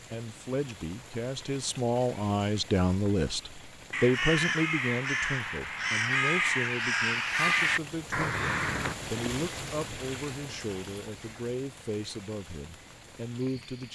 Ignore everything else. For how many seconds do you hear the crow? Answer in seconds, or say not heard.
5 s.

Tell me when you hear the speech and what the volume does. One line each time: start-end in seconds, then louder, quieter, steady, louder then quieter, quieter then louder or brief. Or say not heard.
0.1-13.8 quieter.